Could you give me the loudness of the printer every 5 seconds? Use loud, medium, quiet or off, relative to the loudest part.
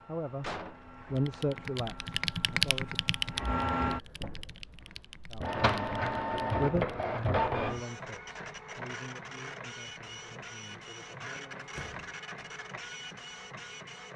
medium, loud, medium.